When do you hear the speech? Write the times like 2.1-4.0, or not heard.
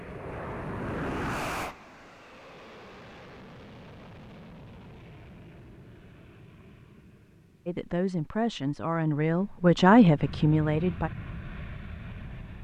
7.7-11.1.